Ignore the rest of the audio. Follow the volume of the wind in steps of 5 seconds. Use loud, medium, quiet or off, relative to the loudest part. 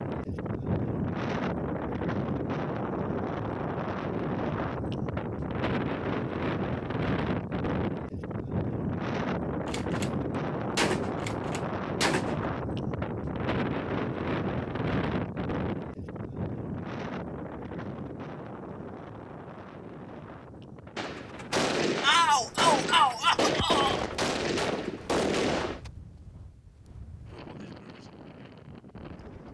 loud, loud, loud, medium, quiet, quiet.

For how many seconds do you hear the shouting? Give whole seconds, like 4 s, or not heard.
2 s.